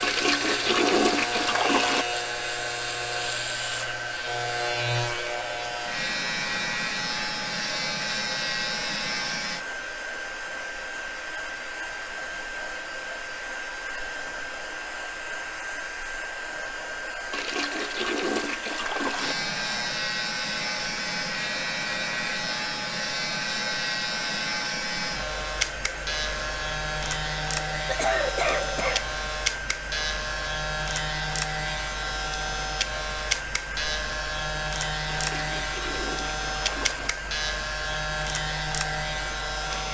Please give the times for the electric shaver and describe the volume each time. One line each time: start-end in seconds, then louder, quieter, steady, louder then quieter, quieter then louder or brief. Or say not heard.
0.0-9.7 steady
19.1-39.8 steady.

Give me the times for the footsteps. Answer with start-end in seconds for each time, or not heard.
not heard.